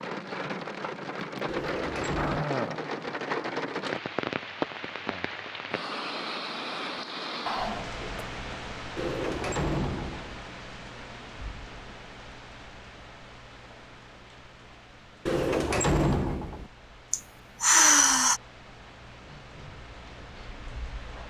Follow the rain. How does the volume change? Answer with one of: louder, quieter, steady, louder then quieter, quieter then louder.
quieter.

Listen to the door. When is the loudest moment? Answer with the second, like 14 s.
16 s.